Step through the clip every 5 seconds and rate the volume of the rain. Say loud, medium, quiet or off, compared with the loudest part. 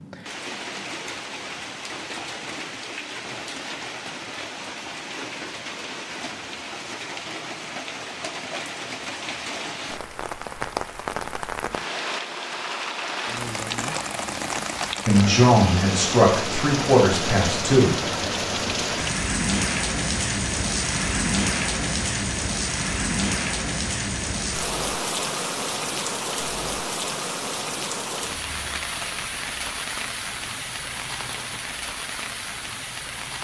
medium, medium, loud, loud, loud, loud, medium.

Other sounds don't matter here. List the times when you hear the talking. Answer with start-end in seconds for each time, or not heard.
15.1-18.0.